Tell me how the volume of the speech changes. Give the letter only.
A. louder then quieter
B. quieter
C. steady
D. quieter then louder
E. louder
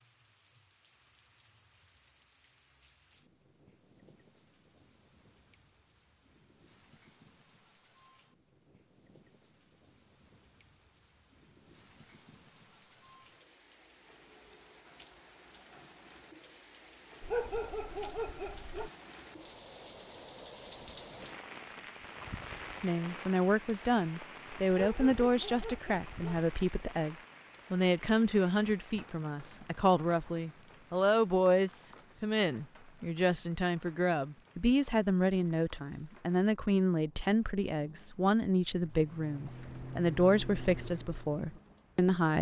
C.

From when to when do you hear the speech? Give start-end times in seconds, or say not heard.
22.8-42.3.